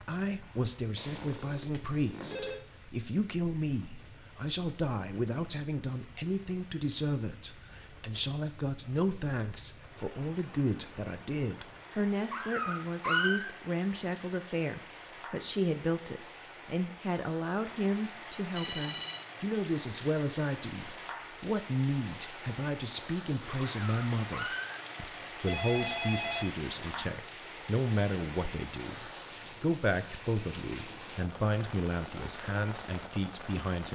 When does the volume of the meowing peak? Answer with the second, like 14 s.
13 s.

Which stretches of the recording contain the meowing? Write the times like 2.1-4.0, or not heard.
12.3-13.4, 23.7-24.8.